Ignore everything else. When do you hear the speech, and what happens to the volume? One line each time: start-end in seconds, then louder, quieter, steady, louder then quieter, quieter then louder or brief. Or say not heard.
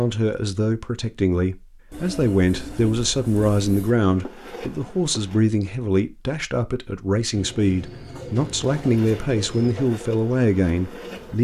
0.0-11.3 steady.